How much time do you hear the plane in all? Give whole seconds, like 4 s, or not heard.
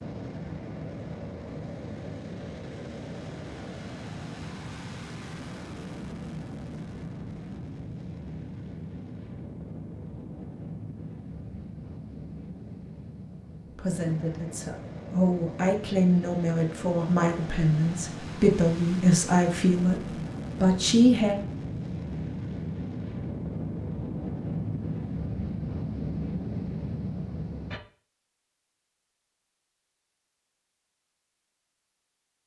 28 s.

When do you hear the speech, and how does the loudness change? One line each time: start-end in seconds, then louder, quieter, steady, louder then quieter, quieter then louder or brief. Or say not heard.
13.8-20.0 louder
20.6-21.4 brief.